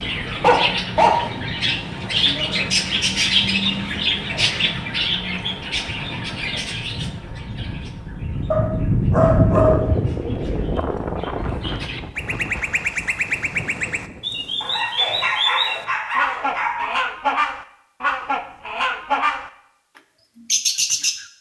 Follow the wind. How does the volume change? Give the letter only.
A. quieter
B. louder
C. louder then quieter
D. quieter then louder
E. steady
C.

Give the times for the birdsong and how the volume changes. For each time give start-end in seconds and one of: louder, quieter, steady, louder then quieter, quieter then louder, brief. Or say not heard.
0.0-19.5 quieter then louder
20.4-21.3 brief.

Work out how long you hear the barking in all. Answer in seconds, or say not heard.
5 s.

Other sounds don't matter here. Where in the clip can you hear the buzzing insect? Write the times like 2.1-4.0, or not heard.
not heard.